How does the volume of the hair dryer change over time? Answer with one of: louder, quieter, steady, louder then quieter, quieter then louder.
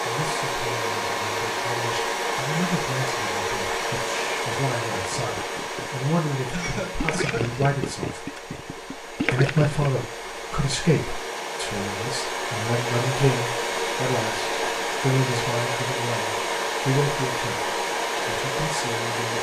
quieter then louder.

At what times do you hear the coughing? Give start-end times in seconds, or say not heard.
6.5-7.5.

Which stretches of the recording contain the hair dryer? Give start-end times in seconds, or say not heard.
0.0-19.3.